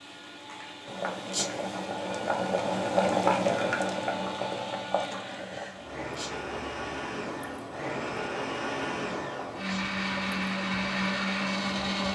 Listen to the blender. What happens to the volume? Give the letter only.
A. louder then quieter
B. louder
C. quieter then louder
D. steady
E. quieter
B.